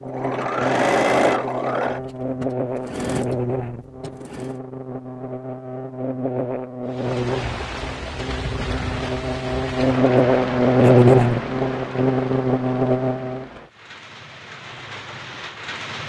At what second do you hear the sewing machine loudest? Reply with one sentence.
The volume of the sewing machine peaks at 1 second.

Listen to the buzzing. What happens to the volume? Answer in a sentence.
The volume of the buzzing goes up.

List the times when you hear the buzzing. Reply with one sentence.
You can hear the buzzing from 0.0 to 13.4 s.